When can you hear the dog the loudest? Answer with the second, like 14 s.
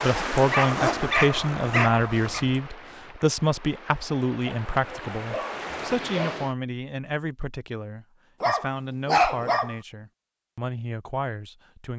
9 s.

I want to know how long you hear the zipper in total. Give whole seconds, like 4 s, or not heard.
2 s.